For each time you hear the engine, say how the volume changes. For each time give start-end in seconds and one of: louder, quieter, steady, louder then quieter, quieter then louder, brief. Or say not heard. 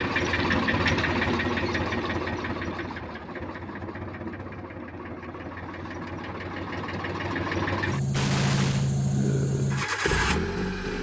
0.0-10.9 quieter then louder.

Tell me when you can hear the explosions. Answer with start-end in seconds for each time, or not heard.
8.1-8.9.